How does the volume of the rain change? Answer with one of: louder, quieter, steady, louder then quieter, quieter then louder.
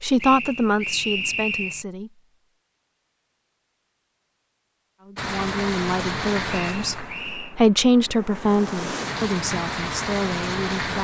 quieter then louder.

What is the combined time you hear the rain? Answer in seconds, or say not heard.
6 s.